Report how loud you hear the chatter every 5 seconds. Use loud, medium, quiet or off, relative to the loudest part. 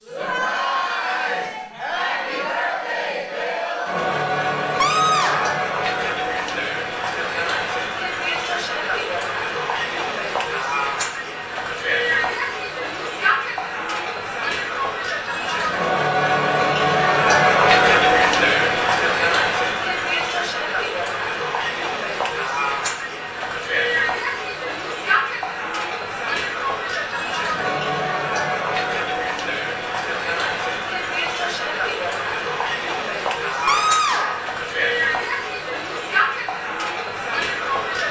medium, medium, medium, loud, medium, medium, medium, medium.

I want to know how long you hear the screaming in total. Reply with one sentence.
The screaming can be heard for 2 seconds in total.